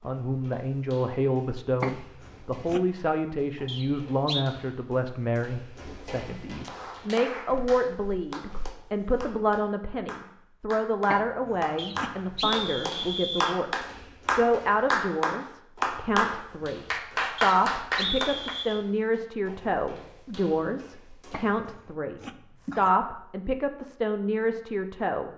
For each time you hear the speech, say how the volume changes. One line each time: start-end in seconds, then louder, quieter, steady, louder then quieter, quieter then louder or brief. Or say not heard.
0.0-25.3 steady.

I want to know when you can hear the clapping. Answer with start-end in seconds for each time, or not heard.
6.6-18.6.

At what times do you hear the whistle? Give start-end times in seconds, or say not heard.
3.6-4.5, 11.8-13.6, 17.4-18.8.